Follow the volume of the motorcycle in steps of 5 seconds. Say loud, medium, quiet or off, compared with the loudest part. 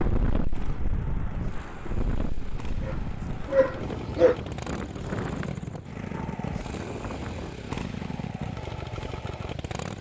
medium, loud.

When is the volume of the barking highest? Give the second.
4 s.